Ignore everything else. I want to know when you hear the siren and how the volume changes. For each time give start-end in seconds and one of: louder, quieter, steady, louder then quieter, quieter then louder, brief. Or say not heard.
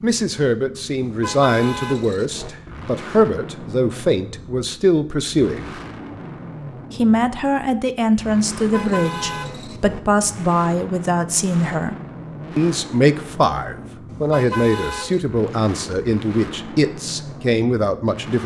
not heard.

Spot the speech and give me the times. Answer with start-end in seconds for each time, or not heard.
0.0-5.8, 6.9-11.9, 12.6-18.4.